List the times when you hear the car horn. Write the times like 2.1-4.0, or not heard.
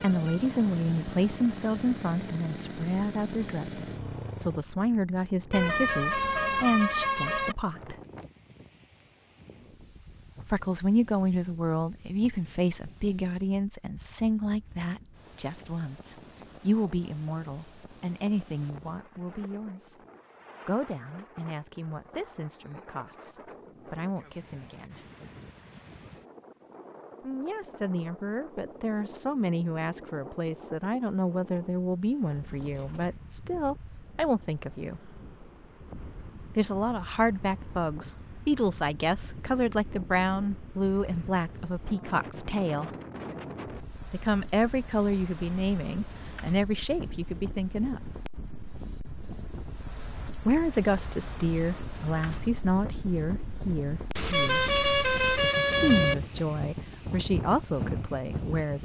5.5-7.5, 54.1-56.1.